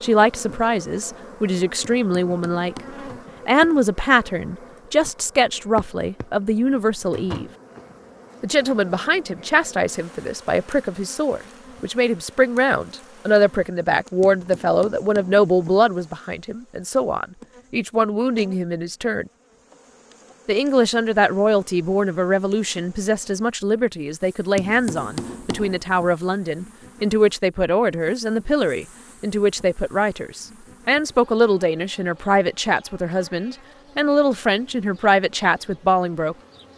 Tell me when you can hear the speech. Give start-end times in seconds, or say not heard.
0.0-2.8, 3.5-7.5, 8.4-19.2, 20.4-36.4.